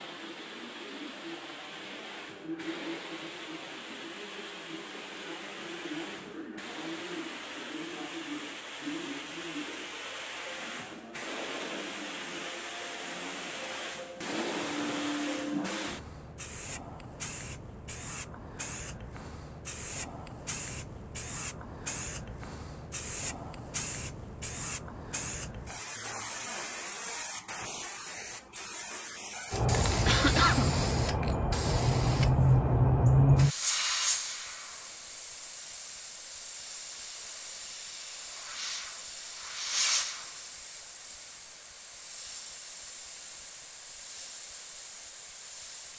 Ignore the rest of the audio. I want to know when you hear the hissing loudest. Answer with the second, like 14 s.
33 s.